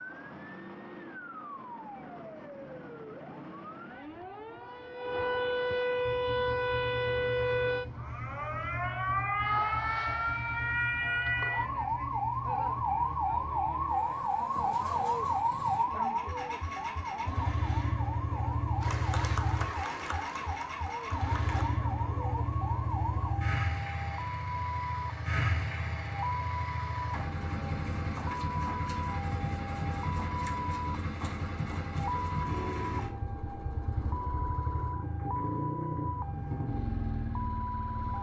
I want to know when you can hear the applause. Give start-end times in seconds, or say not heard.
18.8-21.6.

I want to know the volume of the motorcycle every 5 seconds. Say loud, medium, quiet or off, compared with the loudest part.
off, medium, medium, loud, loud, loud, loud, loud.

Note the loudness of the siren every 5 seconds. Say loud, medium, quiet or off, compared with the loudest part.
quiet, loud, loud, loud, medium, medium, medium, medium.